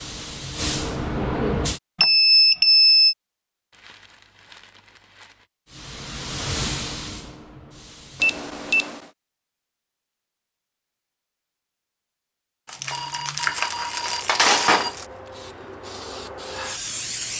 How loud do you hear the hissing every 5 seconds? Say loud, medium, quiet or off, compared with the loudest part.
loud, medium, quiet, medium.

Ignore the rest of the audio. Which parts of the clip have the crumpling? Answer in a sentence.
The crumpling can be heard from 3.7 to 5.5 s and from 12.7 to 15.1 s.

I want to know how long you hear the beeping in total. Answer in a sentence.
The beeping can be heard for 4 seconds in total.